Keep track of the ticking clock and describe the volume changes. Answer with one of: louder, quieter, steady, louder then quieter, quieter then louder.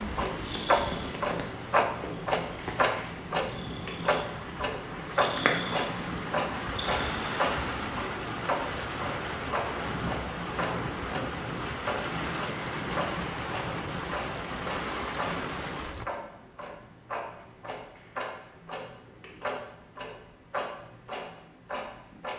quieter.